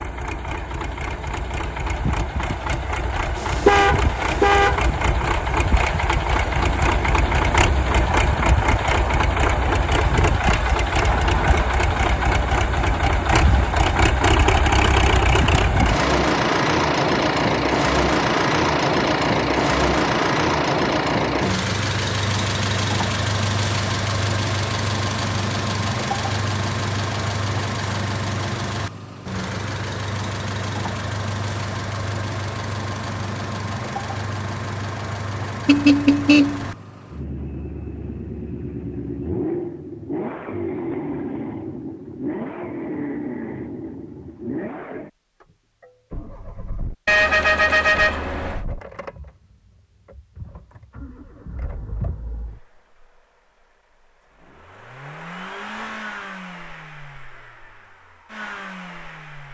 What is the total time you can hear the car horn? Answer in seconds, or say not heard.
4 s.